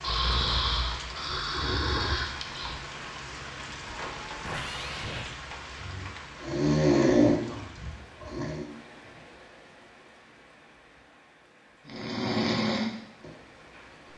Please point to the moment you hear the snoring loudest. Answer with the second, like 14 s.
7 s.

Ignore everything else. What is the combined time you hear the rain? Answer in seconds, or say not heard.
14 s.